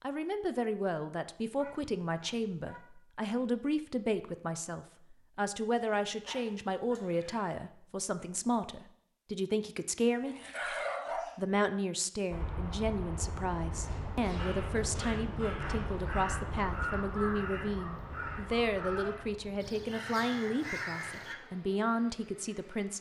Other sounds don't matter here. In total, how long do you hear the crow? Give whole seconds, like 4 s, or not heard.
6 s.